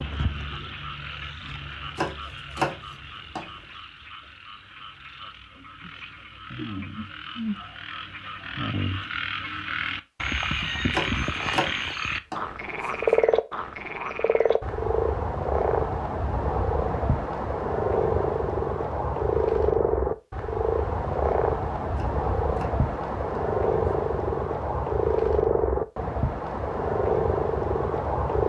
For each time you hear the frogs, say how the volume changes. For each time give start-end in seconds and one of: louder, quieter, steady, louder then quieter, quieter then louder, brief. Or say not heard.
0.0-28.4 louder.